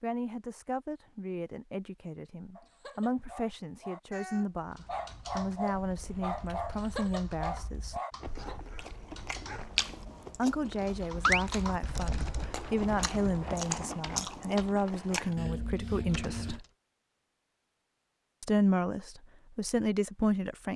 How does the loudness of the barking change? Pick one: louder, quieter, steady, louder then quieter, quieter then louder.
louder then quieter.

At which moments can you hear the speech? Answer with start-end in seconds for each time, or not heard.
0.0-8.0, 10.3-16.6, 18.4-20.7.